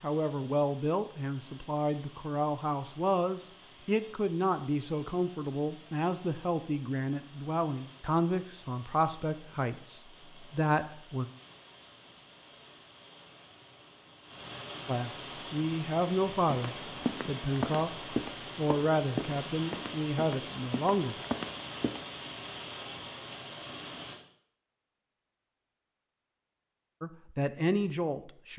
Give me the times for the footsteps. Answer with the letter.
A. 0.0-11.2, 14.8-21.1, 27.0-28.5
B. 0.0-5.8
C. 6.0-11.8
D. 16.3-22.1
D.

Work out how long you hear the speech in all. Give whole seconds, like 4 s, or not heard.
19 s.